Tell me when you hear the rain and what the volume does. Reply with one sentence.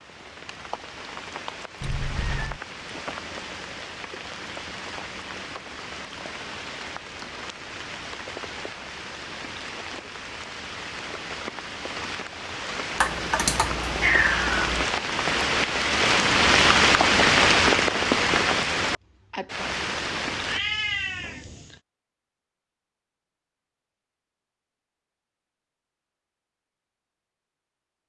The rain can be heard from 0.0 to 20.6 s, getting louder.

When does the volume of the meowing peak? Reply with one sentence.
The loudest moment of the meowing is at 14 seconds.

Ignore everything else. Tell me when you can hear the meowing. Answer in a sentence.
You can hear the meowing from 1.8 to 2.6 s, from 12.9 to 14.8 s and from 20.4 to 21.8 s.